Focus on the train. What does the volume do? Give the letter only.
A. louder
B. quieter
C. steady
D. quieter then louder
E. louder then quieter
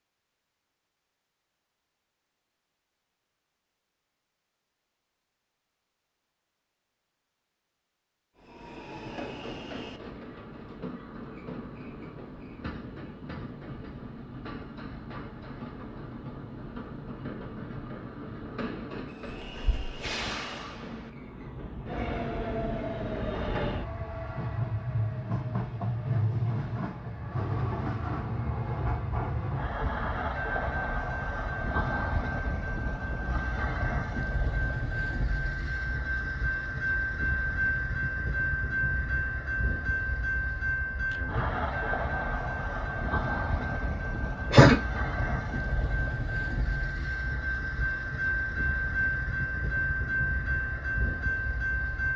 A.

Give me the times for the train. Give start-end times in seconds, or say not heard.
8.3-52.1.